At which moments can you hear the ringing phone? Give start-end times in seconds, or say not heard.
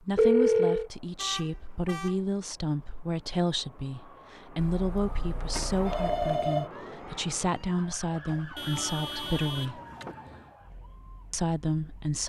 0.1-0.9, 5.5-6.7, 8.2-10.2.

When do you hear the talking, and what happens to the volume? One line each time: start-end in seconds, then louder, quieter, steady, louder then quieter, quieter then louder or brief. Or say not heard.
0.0-9.8 steady
11.3-12.2 brief.